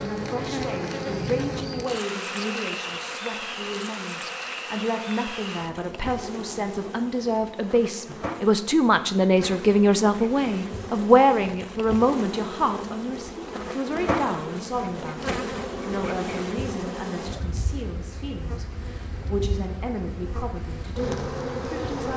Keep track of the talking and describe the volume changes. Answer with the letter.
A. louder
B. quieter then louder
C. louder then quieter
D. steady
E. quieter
C.